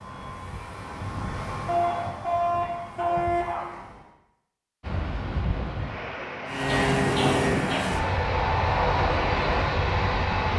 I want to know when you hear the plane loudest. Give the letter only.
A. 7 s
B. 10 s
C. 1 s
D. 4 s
A.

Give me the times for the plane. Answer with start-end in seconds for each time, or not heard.
0.0-4.1, 6.5-10.5.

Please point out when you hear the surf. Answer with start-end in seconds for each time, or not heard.
4.8-10.5.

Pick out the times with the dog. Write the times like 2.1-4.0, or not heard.
1.6-3.6, 6.7-7.9.